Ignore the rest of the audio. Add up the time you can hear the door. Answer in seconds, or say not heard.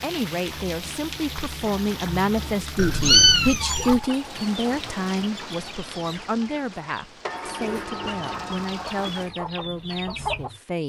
3 s.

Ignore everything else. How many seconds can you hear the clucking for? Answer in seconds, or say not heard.
7 s.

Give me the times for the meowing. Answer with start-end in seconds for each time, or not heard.
2.8-4.0.